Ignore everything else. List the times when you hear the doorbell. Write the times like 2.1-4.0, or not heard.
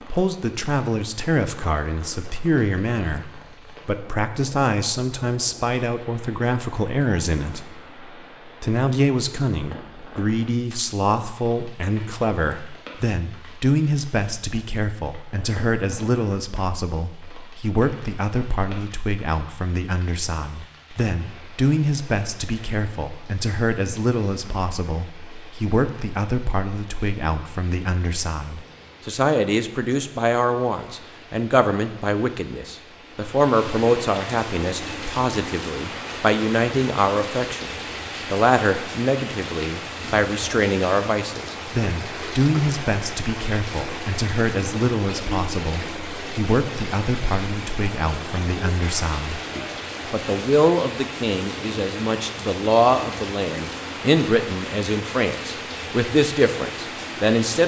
not heard.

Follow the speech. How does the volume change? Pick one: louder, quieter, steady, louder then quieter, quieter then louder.
steady.